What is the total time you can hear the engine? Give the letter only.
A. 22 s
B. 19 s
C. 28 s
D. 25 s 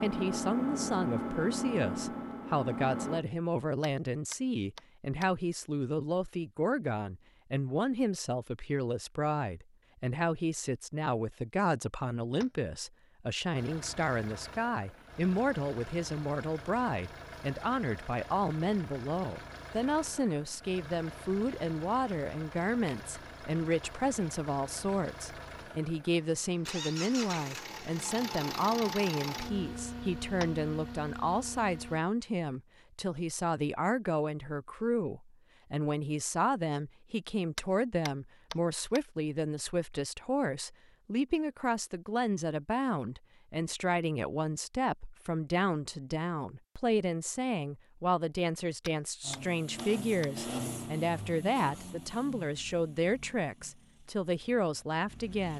C.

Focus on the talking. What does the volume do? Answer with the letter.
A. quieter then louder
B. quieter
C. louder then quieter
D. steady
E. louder
D.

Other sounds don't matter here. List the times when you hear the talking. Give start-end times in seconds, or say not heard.
0.0-55.5.